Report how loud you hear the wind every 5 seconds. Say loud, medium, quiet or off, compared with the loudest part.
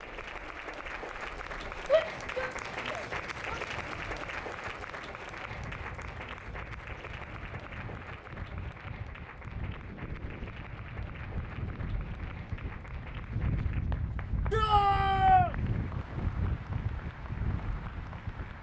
quiet, medium, loud, loud.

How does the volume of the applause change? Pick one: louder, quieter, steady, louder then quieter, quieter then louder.
quieter.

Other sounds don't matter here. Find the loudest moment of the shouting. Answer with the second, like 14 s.
15 s.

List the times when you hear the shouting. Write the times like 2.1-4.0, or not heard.
1.9-3.6, 14.5-15.6.